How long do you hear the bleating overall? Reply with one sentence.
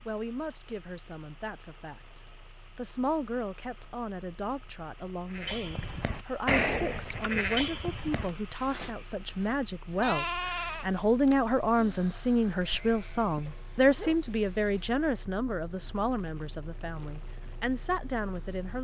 You can hear the bleating for 8 seconds altogether.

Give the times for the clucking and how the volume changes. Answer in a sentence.
You can't hear the clucking here.